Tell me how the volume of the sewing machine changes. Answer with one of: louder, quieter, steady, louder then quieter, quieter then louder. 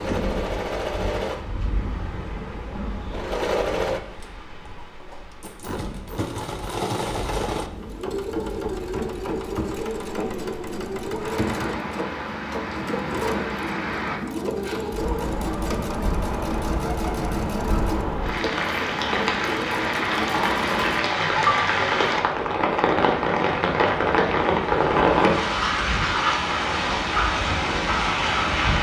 steady.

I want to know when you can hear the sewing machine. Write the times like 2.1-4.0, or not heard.
0.0-21.1.